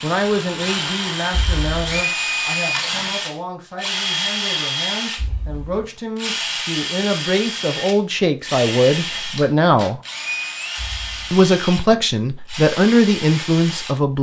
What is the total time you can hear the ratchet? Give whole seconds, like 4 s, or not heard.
not heard.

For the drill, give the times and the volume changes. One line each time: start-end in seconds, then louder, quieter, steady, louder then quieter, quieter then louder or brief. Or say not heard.
0.0-14.0 quieter.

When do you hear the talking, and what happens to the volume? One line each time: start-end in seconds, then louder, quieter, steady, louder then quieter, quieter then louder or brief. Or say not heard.
0.0-10.0 quieter then louder
11.3-14.1 brief.